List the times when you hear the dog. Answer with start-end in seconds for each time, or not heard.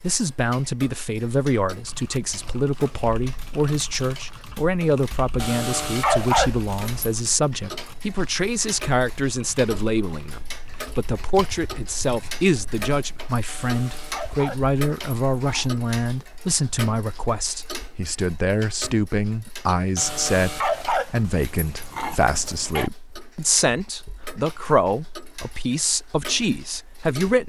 5.4-7.1, 13.4-15.7, 19.9-22.9.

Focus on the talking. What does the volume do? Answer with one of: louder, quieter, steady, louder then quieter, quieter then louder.
steady.